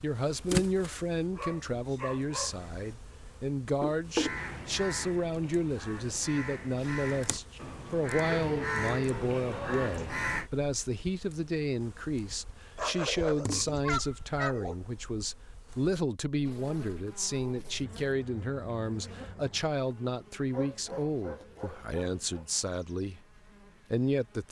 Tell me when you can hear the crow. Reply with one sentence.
You can hear the crow from 4.2 to 10.5 s.